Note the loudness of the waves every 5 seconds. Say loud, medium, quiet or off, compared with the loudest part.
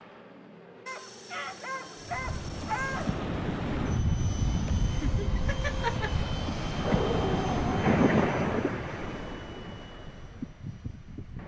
loud, loud, quiet.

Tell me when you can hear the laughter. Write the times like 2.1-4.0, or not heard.
4.7-6.2.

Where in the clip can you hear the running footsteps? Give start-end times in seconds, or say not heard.
not heard.